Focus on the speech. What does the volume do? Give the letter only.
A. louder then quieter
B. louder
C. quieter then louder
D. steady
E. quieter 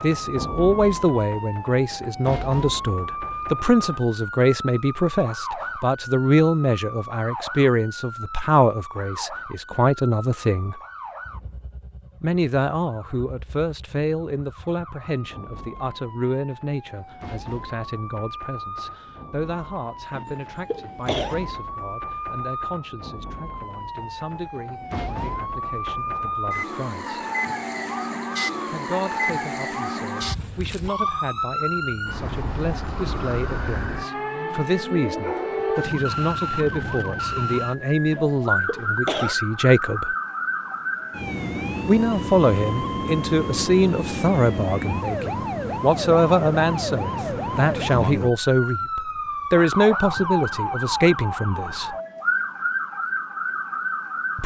C.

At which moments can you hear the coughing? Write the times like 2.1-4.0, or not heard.
20.1-21.4, 38.1-39.4.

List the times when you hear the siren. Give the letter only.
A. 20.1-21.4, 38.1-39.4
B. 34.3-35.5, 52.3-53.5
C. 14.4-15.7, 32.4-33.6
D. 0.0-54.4
D.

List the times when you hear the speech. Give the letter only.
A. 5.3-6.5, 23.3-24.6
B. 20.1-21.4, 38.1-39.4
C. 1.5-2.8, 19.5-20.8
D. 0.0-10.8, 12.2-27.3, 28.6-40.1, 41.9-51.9
D.